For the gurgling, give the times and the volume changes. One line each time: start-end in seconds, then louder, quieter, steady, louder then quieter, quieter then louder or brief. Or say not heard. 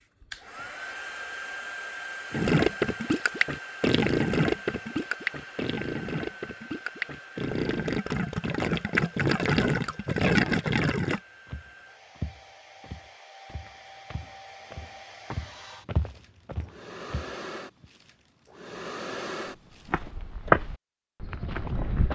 2.3-11.2 quieter then louder.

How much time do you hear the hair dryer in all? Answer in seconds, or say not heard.
20 s.